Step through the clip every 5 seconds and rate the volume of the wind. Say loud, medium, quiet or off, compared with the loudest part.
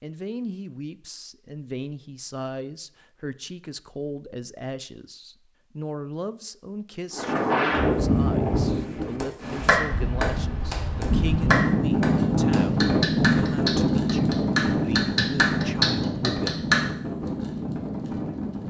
off, loud, loud, medium.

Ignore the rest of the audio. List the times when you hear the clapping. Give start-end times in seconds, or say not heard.
9.2-16.8.